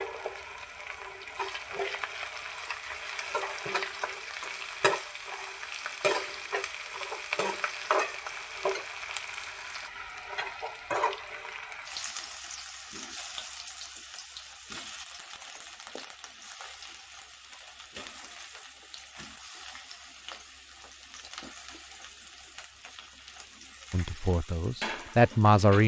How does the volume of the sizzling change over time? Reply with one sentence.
The volume of the sizzling goes down.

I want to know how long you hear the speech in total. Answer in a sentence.
The speech can be heard for 2 seconds in total.